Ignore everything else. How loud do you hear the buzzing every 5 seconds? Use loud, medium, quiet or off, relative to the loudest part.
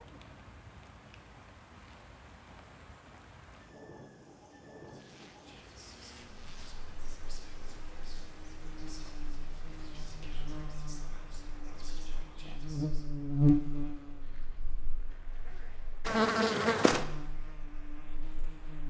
off, quiet, loud, loud.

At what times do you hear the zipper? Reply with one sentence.
The zipper can be heard from 4.8 to 6.8 s and from 14.2 to 16.1 s.